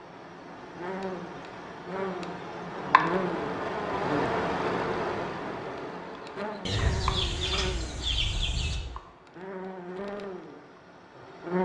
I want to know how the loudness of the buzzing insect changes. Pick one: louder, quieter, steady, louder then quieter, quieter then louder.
louder then quieter.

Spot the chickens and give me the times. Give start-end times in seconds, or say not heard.
6.7-8.8.